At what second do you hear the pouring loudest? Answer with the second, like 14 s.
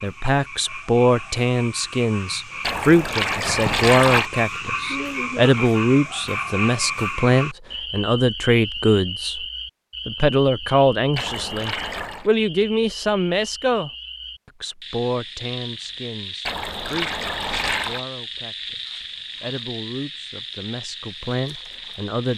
4 s.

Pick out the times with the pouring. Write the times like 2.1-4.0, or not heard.
2.6-4.3, 11.2-12.3, 16.4-18.1.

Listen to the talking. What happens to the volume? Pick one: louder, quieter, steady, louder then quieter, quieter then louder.
quieter.